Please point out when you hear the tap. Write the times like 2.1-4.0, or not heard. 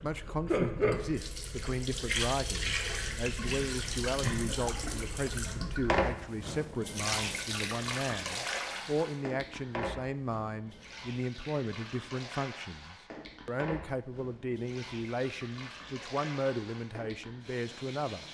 0.0-18.2.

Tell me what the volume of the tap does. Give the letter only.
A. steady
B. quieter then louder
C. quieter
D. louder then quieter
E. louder
C.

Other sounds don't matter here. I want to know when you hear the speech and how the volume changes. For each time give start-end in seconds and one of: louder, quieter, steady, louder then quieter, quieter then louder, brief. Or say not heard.
0.0-18.2 steady.